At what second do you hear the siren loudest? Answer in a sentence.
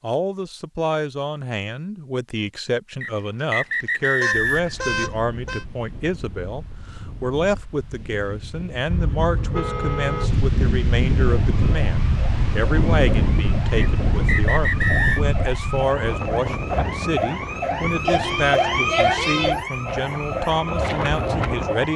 The loudest moment of the siren is at 19 seconds.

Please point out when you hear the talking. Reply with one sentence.
You can hear the talking from 0.0 to 21.9 s.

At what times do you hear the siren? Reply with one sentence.
You can hear the siren from 11.2 to 21.9 s.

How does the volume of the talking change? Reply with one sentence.
The loudness of the talking stays about the same.